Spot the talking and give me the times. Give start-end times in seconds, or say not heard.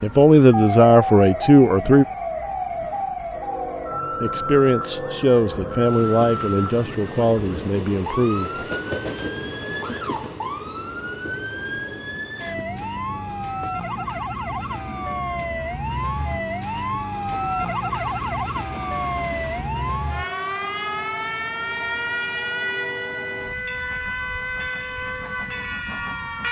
0.0-2.0, 4.2-8.7.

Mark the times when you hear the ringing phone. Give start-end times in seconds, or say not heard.
not heard.